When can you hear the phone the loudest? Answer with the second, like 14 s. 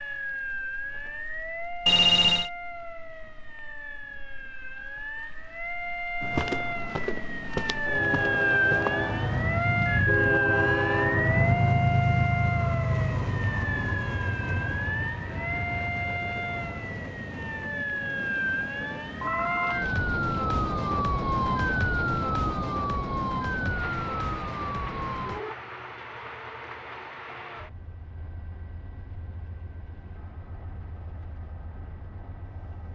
2 s.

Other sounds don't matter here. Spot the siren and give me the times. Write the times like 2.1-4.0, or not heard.
0.0-25.6.